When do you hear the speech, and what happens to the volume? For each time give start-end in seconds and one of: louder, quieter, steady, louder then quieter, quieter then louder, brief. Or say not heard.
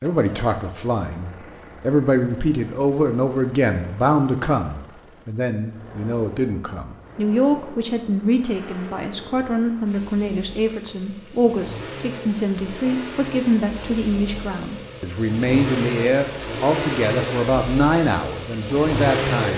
0.0-19.5 steady.